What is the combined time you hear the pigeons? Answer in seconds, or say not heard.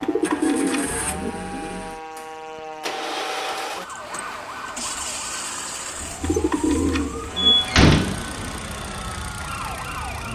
4 s.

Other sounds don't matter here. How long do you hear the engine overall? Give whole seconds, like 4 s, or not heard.
10 s.